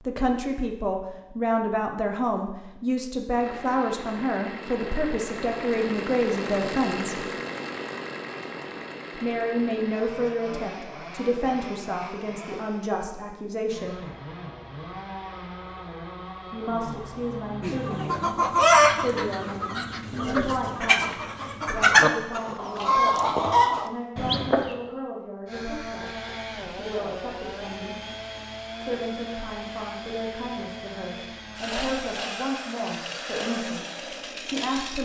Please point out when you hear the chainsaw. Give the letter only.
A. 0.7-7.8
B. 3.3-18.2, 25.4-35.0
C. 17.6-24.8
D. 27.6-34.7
B.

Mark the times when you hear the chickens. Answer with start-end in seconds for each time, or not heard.
17.6-24.8.